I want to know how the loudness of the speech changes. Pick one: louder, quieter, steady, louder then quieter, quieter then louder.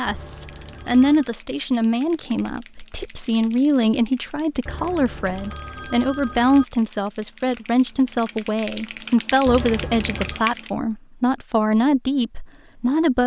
steady.